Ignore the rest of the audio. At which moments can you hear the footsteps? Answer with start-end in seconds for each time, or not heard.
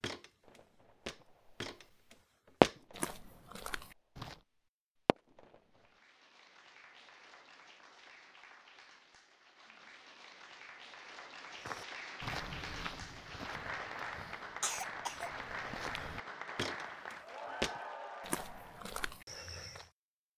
0.0-4.4, 11.6-19.9.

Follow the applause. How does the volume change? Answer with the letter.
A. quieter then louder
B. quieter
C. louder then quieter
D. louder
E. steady
D.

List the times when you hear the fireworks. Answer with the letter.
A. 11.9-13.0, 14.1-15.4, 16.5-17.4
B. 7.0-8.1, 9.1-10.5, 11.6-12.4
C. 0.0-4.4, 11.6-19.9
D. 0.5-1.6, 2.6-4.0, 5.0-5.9
D.